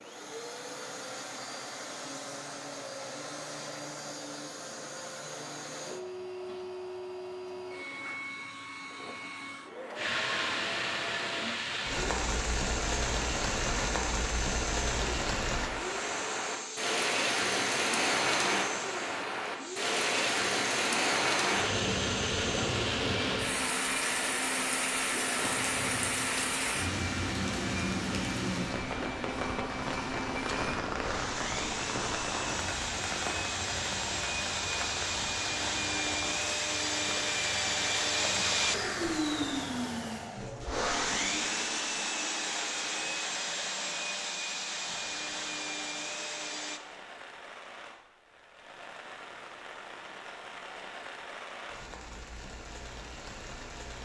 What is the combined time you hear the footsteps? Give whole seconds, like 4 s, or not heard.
not heard.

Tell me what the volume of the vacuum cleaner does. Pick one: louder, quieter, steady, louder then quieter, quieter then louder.
louder.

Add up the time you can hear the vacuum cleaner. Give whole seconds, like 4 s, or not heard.
47 s.